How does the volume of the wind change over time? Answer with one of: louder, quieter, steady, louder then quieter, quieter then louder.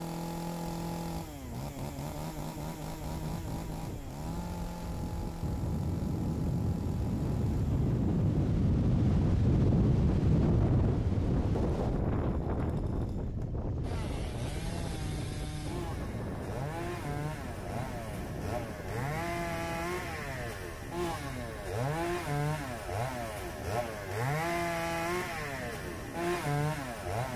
louder then quieter.